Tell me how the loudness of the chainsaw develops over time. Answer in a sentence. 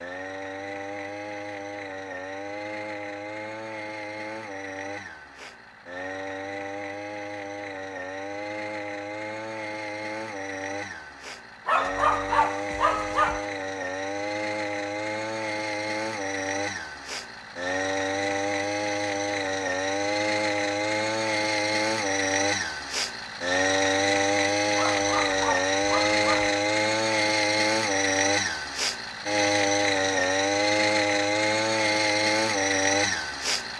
The volume of the chainsaw goes up.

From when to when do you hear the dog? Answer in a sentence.
The dog can be heard from 11.7 to 13.4 s and from 24.8 to 26.6 s.